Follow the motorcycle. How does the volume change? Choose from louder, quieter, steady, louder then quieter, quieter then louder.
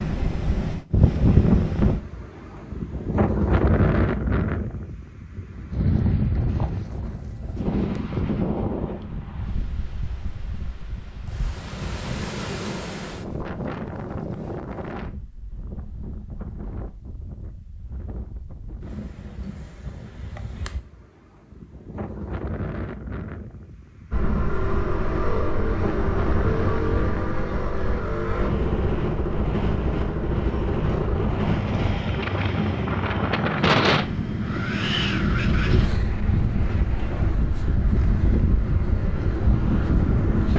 quieter.